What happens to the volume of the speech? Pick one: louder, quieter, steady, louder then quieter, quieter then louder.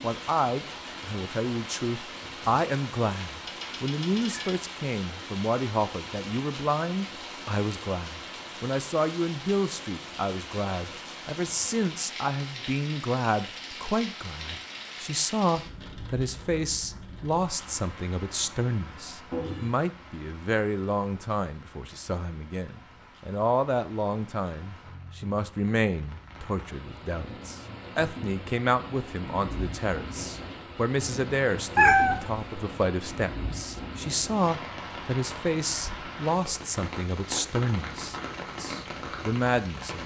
steady.